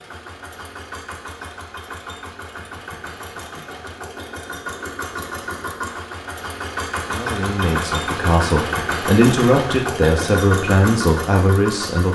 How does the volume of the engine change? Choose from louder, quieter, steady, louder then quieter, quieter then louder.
louder.